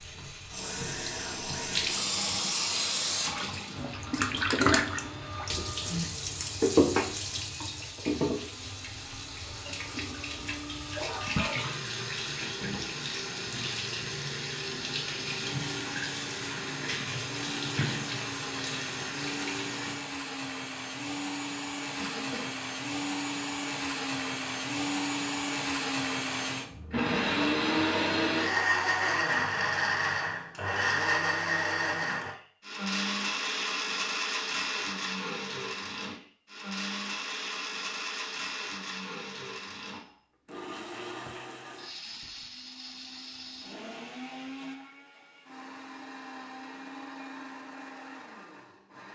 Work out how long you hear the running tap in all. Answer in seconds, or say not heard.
20 s.